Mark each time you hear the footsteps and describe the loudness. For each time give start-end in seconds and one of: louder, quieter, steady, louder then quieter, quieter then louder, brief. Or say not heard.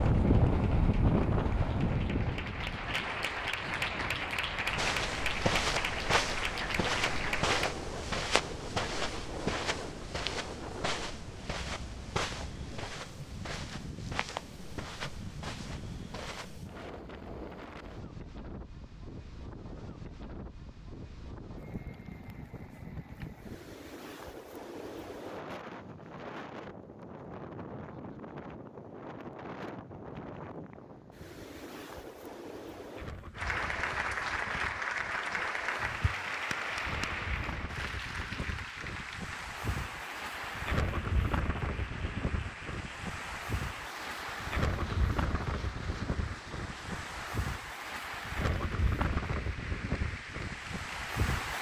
4.7-16.6 quieter.